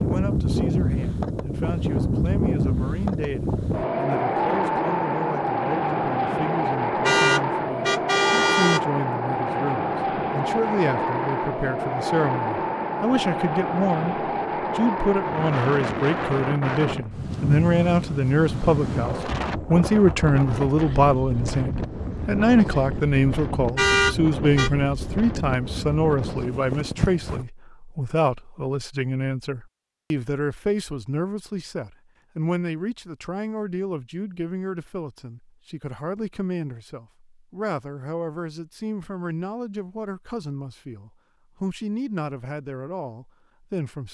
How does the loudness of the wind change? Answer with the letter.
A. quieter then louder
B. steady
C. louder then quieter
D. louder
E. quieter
E.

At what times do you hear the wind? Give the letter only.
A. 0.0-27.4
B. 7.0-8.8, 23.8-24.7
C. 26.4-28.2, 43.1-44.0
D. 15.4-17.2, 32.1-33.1
A.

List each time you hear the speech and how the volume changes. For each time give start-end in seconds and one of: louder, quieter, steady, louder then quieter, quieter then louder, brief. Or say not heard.
0.0-44.0 louder then quieter.